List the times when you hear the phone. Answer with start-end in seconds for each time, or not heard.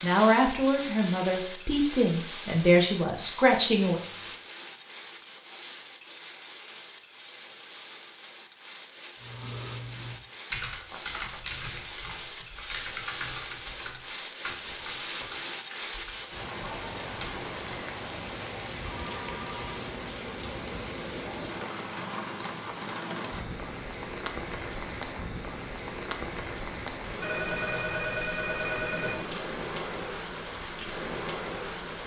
4.0-4.4, 18.9-19.8, 27.2-29.2.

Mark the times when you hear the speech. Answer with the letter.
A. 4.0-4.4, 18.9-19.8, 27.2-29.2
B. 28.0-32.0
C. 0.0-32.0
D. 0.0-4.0
D.